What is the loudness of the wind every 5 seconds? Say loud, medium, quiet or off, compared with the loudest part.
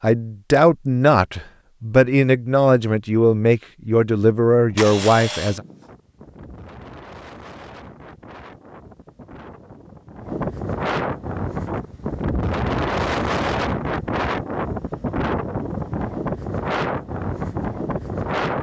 off, quiet, loud, loud.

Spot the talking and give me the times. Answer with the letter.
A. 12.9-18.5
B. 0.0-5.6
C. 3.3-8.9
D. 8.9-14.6
B.